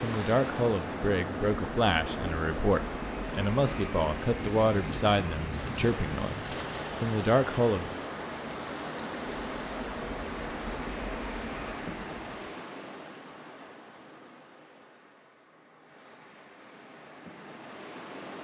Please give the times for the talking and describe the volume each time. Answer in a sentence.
The talking can be heard from 0.0 to 7.9 s, at a steady volume.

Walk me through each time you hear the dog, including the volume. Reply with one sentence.
You can't hear the dog here.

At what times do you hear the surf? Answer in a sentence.
You can hear the surf from 0.0 to 18.3 s.